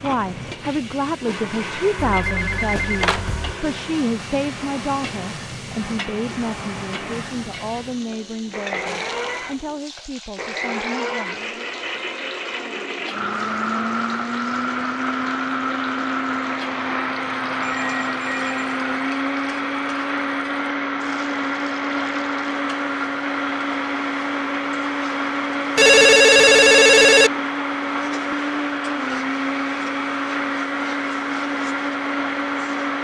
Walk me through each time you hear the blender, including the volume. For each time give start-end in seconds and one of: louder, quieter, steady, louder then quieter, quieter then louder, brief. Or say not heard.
0.0-32.9 louder.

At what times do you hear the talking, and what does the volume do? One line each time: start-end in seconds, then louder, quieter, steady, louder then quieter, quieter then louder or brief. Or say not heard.
0.0-11.6 quieter.